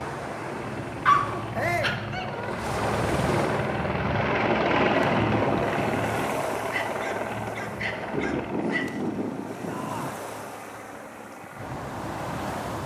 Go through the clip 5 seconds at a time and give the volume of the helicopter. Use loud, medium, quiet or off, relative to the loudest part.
loud, loud, quiet.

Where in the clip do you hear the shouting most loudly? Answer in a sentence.
The loudest moment of the shouting is at 2 seconds.